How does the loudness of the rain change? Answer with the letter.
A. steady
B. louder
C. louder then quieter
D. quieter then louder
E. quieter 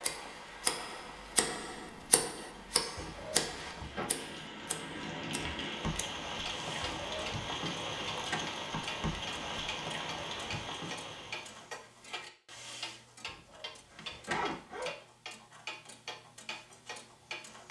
B.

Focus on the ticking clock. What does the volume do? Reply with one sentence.
The loudness of the ticking clock goes down.